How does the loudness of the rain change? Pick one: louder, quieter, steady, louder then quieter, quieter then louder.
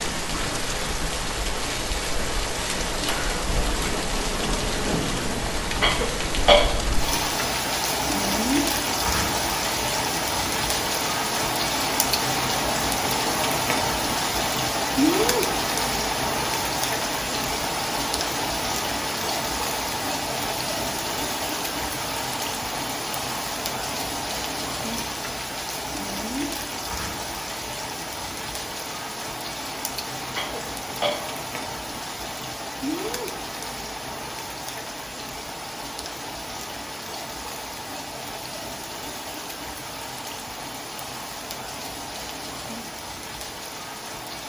quieter.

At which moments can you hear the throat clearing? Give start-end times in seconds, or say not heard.
5.8-6.7, 30.4-31.2.